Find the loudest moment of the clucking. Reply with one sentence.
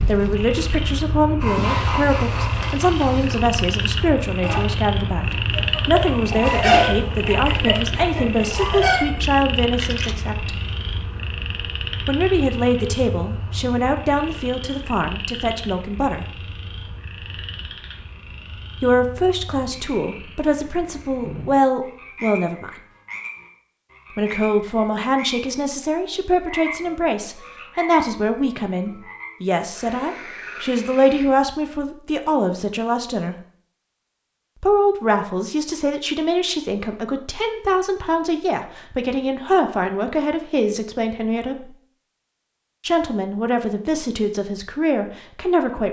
The volume of the clucking peaks at 7 seconds.